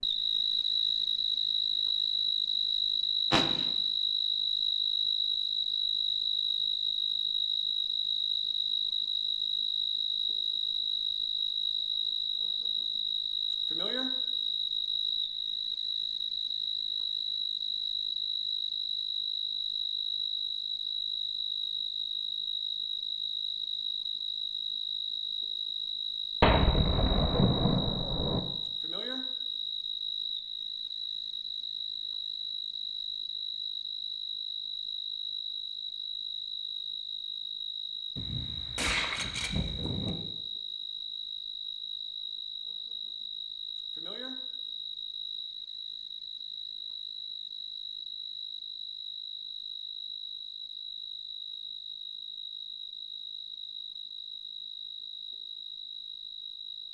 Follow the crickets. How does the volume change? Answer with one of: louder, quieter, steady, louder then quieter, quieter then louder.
quieter.